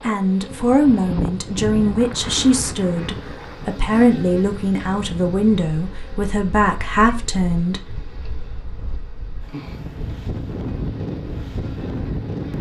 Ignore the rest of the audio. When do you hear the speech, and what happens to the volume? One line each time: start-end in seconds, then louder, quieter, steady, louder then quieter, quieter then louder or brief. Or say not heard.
0.0-8.0 steady.